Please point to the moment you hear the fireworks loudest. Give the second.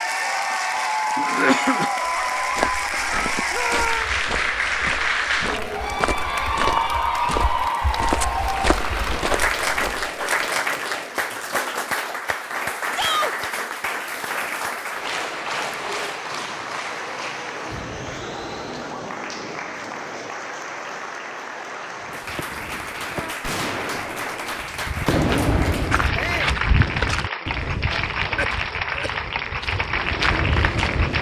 25 s.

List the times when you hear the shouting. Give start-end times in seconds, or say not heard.
3.5-4.2, 12.9-13.3, 26.1-26.6.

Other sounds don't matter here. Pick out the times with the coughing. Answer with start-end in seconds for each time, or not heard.
1.1-1.9, 28.4-29.1.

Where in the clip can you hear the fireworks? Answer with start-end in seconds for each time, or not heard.
22.0-27.1.